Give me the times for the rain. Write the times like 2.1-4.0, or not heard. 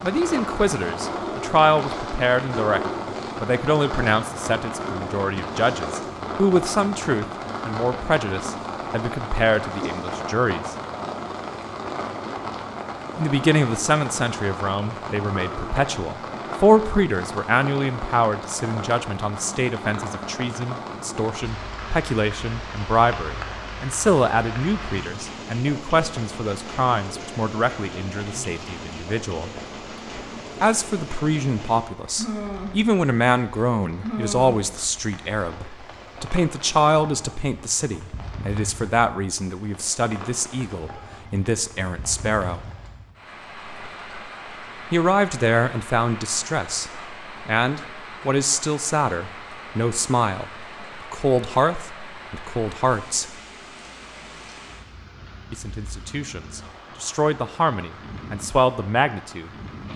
0.0-59.9.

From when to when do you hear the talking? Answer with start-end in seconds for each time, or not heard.
0.0-2.8, 3.4-10.8, 13.2-29.5, 30.6-42.6, 44.9-53.4, 55.5-59.9.